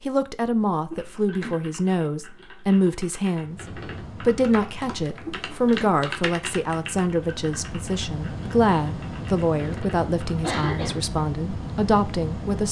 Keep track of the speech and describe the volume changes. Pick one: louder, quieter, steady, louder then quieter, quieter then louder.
steady.